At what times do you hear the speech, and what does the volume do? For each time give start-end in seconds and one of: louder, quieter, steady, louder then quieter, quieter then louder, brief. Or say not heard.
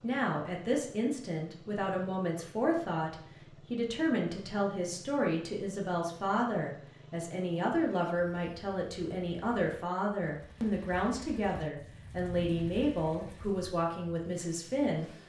0.0-15.1 steady.